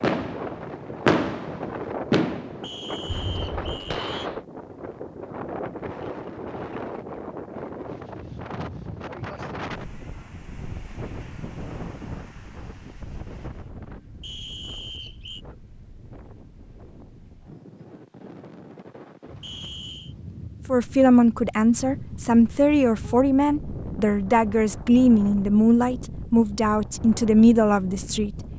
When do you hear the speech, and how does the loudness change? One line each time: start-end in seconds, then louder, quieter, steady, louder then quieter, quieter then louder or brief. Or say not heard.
20.7-28.4 steady.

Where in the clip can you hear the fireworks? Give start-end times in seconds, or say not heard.
0.0-4.5.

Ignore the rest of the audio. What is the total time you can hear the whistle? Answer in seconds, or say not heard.
4 s.